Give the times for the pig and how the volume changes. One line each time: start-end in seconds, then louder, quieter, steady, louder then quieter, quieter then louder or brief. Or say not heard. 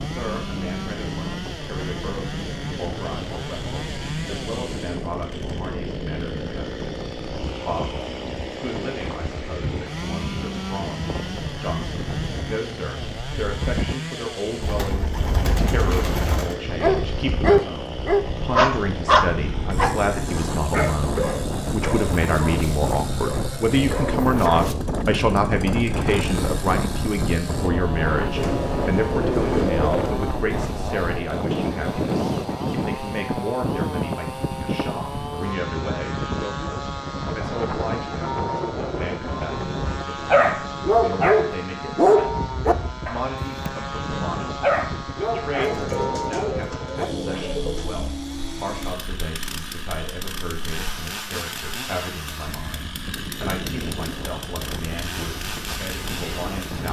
not heard.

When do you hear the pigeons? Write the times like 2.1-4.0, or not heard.
14.6-16.6, 28.4-30.1, 45.5-48.0.